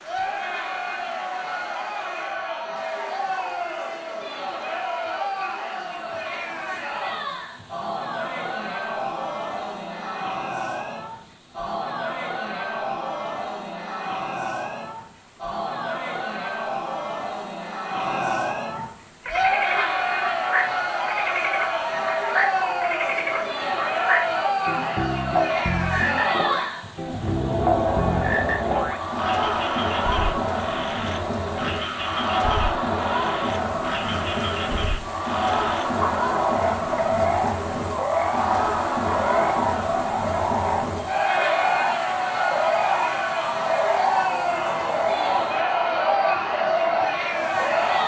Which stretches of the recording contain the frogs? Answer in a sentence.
You can hear the frogs from 18.8 to 48.0 s.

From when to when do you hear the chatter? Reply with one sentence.
The chatter can be heard from 0.0 to 48.0 s.